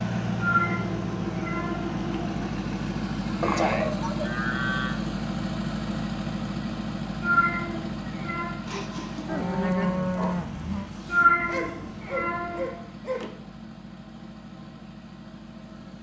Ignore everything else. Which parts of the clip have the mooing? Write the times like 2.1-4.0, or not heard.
3.4-5.0, 9.2-10.9.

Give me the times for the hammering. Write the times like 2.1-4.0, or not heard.
not heard.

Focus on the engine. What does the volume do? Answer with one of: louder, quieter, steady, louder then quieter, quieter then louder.
quieter.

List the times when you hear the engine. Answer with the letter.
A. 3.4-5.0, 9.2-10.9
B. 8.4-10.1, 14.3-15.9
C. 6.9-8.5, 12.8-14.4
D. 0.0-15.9
D.